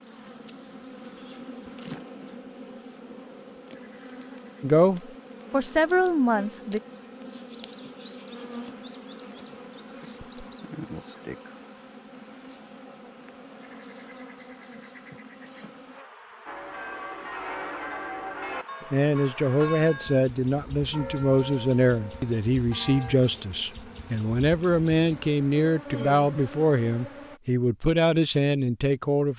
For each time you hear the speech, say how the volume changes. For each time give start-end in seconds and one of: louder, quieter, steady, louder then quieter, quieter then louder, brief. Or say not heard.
4.6-6.8 brief
18.9-29.3 steady.